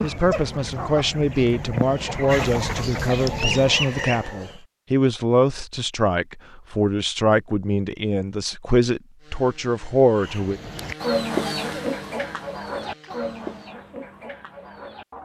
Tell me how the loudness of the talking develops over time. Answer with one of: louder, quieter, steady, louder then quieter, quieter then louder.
steady.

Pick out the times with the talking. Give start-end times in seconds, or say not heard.
0.0-10.6.